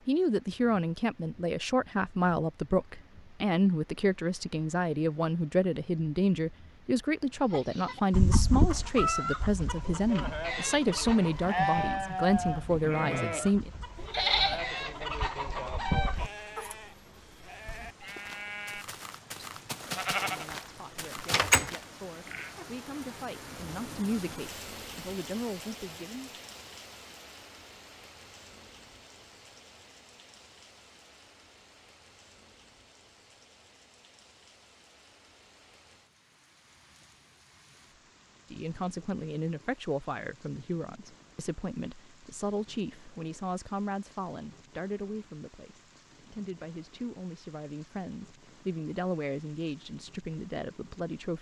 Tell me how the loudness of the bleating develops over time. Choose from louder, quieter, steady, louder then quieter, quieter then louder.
quieter then louder.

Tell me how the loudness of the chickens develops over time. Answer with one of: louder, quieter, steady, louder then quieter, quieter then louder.
quieter then louder.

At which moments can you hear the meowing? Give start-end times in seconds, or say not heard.
not heard.